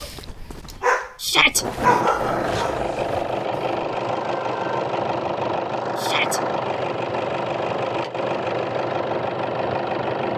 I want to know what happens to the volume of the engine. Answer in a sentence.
The volume of the engine stays about the same.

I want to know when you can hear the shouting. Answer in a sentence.
You can hear the shouting from 1.2 to 1.6 s and from 6.0 to 6.4 s.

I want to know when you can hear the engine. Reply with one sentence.
You can hear the engine from 1.6 to 10.3 s.